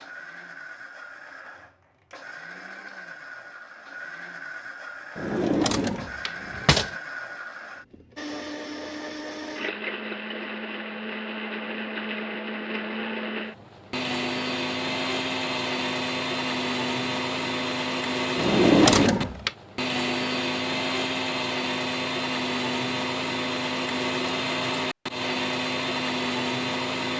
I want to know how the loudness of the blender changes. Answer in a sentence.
The volume of the blender goes up.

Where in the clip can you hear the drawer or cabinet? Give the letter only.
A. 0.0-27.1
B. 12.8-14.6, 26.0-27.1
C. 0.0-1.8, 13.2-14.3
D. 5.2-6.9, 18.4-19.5
D.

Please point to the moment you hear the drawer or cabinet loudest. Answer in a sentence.
The loudest moment of the drawer or cabinet is at 19 seconds.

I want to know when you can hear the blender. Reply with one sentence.
You can hear the blender from 0.0 to 27.1 s.